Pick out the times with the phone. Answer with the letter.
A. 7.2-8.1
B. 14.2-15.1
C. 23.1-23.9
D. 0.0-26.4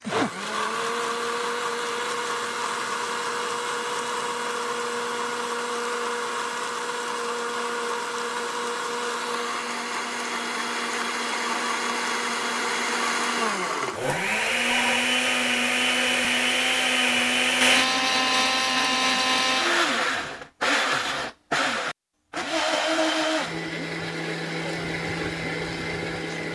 B.